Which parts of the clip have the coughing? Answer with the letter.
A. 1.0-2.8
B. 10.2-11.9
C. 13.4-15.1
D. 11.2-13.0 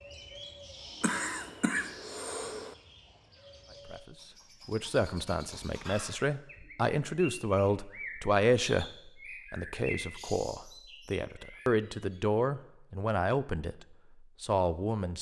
A.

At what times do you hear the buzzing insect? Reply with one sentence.
The buzzing insect can't be heard in this clip.